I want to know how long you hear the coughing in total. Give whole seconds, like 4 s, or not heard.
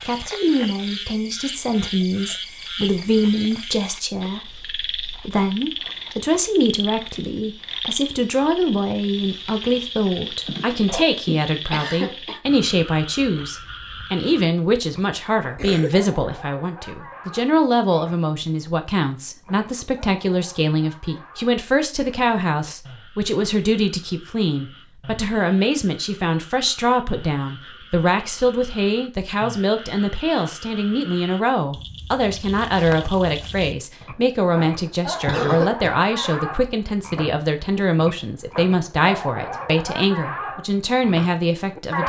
3 s.